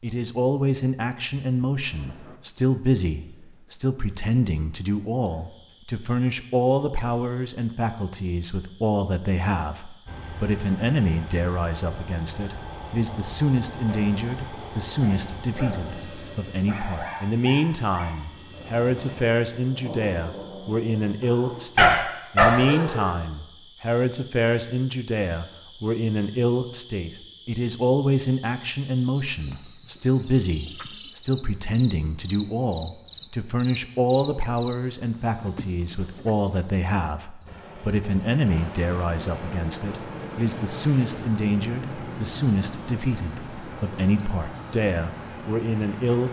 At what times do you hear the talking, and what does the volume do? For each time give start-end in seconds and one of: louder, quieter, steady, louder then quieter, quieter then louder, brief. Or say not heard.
0.0-46.2 steady.